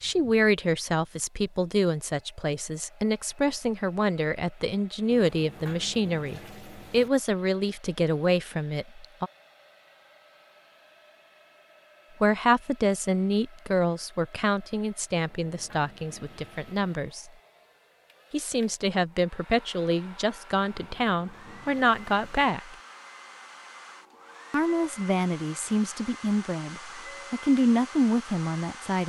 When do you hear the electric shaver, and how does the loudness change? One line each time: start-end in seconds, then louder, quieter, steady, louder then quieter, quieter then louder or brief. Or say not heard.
not heard.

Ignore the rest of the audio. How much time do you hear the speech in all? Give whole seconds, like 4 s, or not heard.
23 s.